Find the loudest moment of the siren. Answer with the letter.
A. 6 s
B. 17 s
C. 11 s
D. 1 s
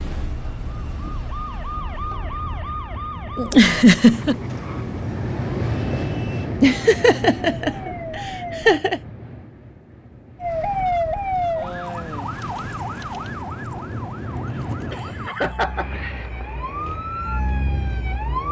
C.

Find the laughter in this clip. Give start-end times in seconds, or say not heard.
3.4-4.3, 6.6-9.0, 14.9-15.8.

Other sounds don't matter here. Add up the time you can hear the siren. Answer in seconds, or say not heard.
17 s.